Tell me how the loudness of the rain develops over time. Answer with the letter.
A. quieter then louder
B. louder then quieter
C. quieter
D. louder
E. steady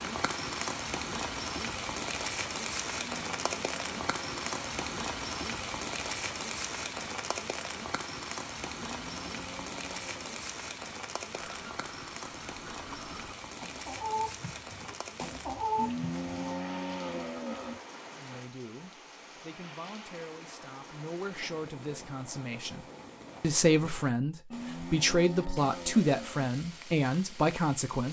C.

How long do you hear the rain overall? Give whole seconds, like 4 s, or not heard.
28 s.